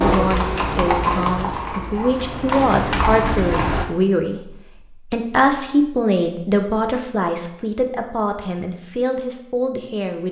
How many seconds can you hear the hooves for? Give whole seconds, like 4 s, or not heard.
4 s.